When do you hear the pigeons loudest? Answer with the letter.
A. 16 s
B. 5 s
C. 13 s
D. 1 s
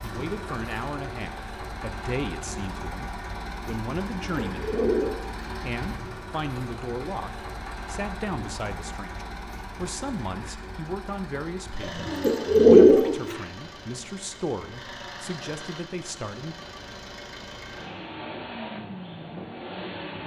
C.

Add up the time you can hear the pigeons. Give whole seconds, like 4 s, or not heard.
3 s.